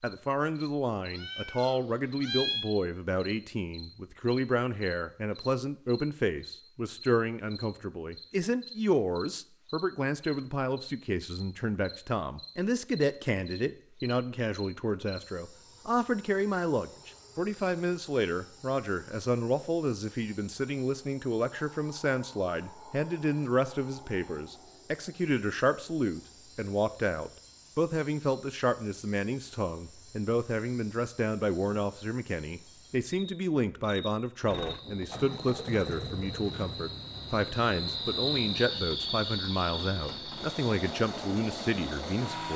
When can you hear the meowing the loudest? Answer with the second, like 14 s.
2 s.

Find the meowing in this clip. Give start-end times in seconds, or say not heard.
1.1-2.6.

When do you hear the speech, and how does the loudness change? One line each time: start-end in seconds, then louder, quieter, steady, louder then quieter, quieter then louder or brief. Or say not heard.
0.0-42.5 steady.